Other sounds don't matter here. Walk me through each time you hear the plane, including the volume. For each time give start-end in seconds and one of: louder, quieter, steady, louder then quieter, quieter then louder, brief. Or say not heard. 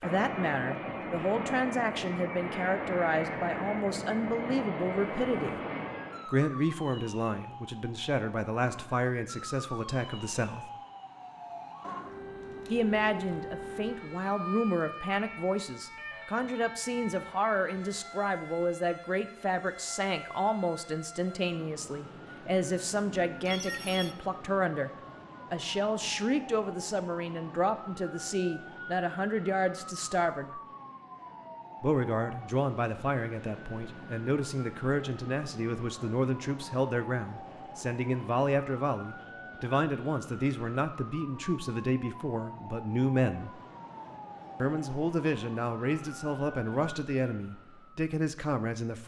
0.0-6.3 steady.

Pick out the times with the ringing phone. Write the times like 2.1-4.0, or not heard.
23.2-24.1.